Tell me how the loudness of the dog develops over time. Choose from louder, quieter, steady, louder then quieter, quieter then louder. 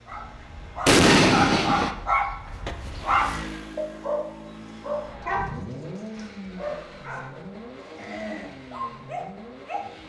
quieter.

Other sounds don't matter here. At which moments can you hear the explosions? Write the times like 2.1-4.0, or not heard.
0.8-1.9.